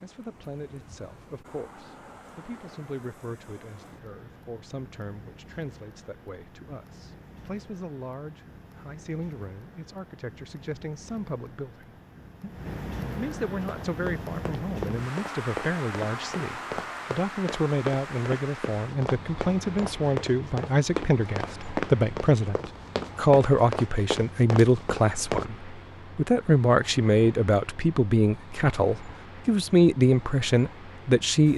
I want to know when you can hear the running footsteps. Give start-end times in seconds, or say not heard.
13.6-25.4.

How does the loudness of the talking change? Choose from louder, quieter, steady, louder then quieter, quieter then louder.
louder.